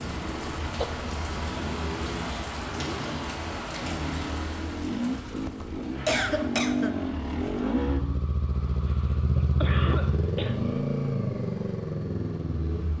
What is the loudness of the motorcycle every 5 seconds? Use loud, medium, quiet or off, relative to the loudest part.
medium, loud, loud.